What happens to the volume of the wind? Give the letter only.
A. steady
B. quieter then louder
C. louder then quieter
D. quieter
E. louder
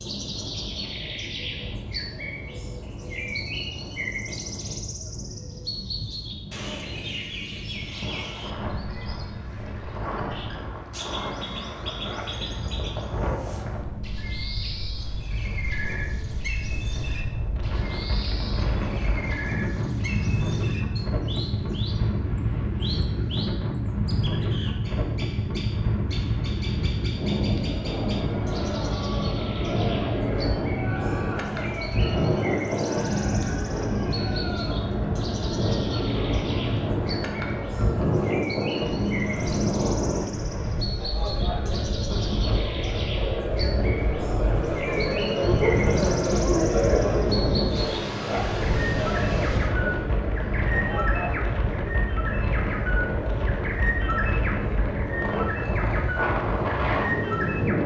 E.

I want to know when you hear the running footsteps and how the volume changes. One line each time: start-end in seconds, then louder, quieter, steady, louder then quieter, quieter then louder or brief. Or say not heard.
not heard.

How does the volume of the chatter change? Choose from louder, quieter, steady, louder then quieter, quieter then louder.
louder then quieter.